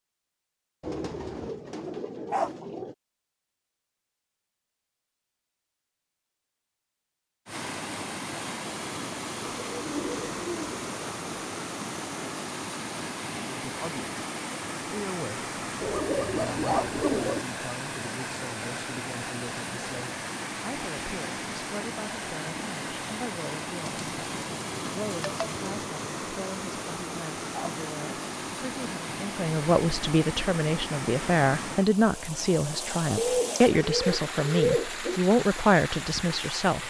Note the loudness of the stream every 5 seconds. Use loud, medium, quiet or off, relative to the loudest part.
off, loud, loud, loud, loud, loud, loud, loud.